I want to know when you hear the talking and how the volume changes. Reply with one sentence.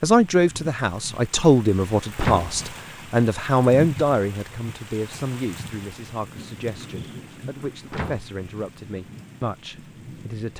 You can hear the talking from 0.0 to 10.5 s, getting quieter.